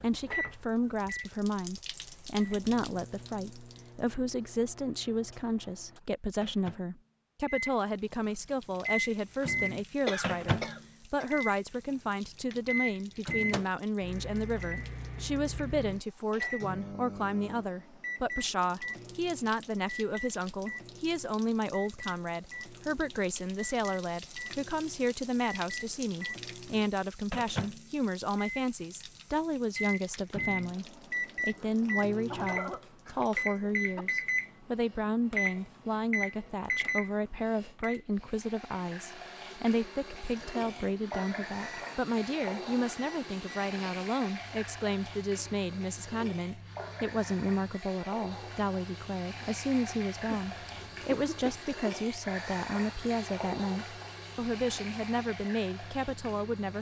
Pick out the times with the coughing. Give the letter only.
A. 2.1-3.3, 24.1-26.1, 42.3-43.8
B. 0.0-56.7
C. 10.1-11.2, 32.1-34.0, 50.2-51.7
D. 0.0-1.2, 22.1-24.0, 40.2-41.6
C.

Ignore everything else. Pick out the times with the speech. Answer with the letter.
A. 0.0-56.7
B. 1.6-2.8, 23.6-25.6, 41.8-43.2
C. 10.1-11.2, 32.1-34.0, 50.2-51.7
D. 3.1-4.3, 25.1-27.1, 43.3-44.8
A.